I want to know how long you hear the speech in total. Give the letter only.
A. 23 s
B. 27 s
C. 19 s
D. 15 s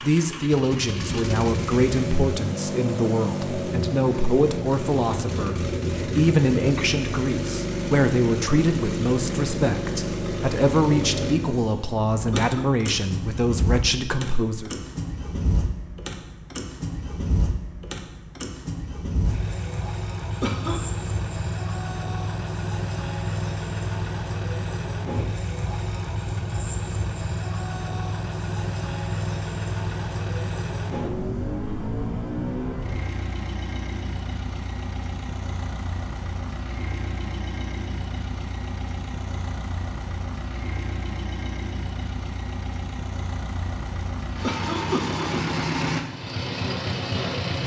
D.